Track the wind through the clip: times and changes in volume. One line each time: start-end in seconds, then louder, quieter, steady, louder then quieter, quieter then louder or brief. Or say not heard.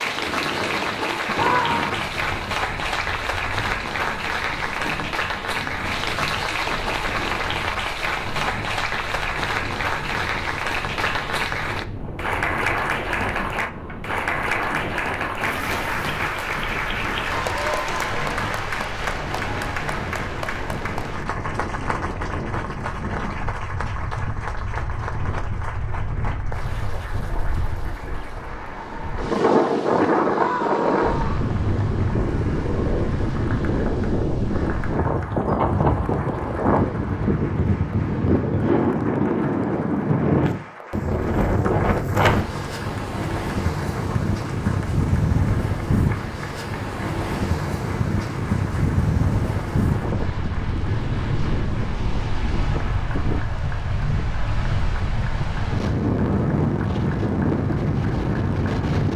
0.0-59.1 louder.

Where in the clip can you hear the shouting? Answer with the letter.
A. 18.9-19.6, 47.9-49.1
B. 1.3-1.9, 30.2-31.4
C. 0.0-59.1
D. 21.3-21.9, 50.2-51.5
B.